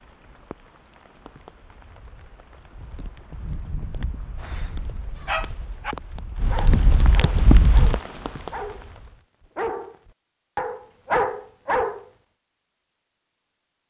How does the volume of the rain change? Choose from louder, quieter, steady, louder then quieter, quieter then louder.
louder.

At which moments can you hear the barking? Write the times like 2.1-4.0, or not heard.
4.3-12.1.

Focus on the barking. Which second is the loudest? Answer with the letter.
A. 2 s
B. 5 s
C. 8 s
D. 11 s
D.